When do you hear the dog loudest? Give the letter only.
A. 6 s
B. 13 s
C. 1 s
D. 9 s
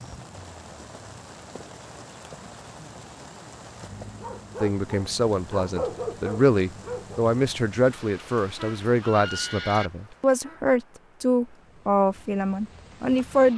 A.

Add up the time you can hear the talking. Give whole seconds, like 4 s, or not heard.
9 s.